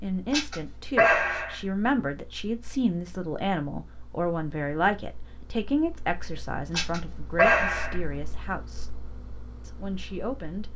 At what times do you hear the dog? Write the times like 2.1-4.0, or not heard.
0.3-1.6, 6.7-8.0.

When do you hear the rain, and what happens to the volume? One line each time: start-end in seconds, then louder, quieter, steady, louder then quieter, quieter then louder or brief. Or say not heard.
not heard.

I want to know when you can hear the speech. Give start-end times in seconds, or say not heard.
0.0-8.9, 9.6-10.7.